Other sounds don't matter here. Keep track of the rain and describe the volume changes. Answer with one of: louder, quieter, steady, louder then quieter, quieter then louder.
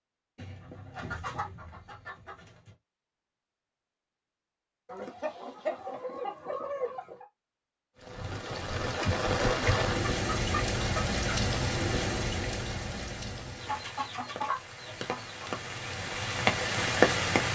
quieter then louder.